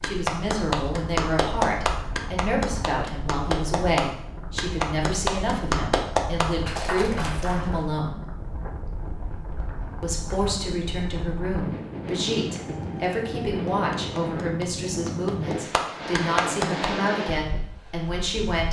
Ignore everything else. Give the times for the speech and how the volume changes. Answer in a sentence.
You can hear the speech from 0.0 to 8.2 s, at a steady volume; and from 10.0 to 18.6 s, at a steady volume.